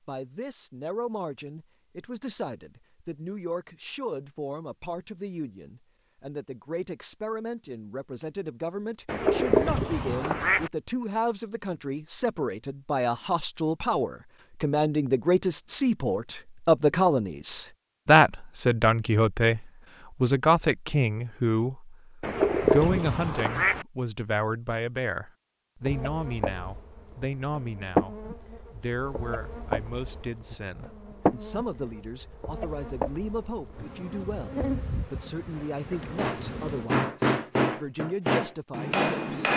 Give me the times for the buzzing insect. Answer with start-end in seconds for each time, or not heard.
25.8-36.9.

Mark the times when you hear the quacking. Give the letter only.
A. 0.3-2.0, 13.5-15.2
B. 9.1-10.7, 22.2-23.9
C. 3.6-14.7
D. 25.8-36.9
B.